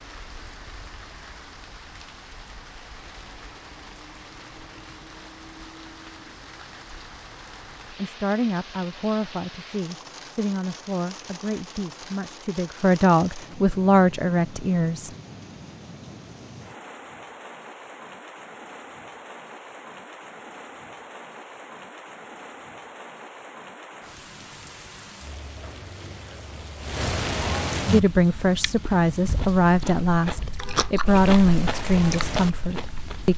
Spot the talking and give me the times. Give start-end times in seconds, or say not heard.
8.0-15.1, 27.9-33.3.